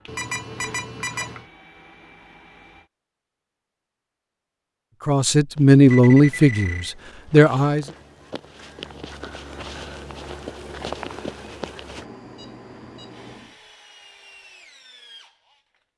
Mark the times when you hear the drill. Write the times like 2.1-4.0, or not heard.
0.0-2.9, 13.1-15.7.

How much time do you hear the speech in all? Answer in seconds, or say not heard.
3 s.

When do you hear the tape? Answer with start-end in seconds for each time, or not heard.
not heard.